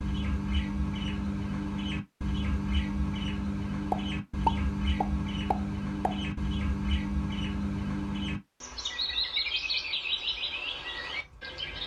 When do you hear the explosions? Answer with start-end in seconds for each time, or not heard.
3.9-6.2.